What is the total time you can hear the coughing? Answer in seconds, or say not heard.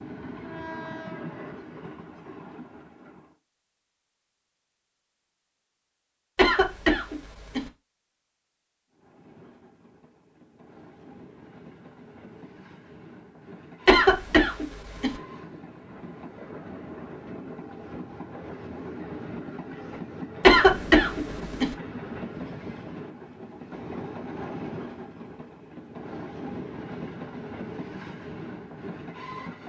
4 s.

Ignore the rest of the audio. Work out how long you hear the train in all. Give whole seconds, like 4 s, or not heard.
24 s.